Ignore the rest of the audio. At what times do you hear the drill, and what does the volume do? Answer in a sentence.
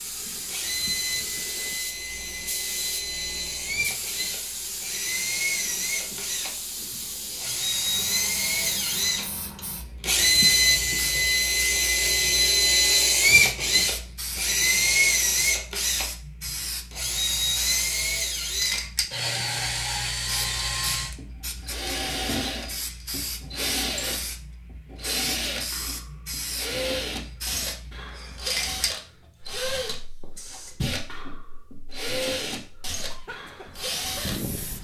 The drill can be heard from 0.0 to 34.7 s, getting louder then quieter.